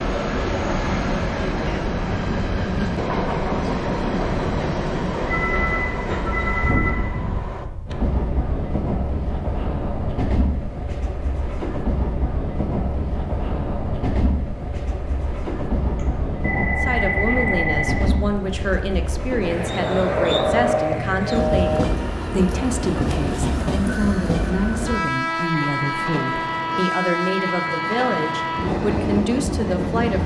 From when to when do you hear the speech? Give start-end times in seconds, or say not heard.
16.8-30.2.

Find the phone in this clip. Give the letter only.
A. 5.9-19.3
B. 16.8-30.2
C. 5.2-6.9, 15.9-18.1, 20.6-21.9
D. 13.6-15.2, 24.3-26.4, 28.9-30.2
C.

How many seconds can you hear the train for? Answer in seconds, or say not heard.
30 s.